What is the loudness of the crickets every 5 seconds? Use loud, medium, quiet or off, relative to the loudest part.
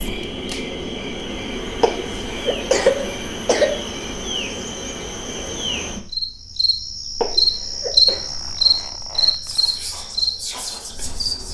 medium, loud, medium.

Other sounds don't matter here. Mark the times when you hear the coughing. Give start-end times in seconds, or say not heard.
1.8-3.8, 7.2-8.2.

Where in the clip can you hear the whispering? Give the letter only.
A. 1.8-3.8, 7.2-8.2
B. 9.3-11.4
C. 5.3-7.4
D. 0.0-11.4
B.